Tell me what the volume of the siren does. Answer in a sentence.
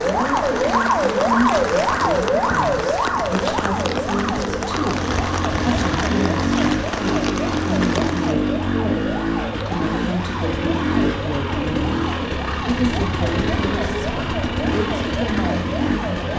The volume of the siren goes down.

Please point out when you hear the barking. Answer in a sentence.
The barking can't be heard in this clip.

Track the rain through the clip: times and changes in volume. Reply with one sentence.
You can hear the rain from 0.0 to 8.3 s, at a steady volume.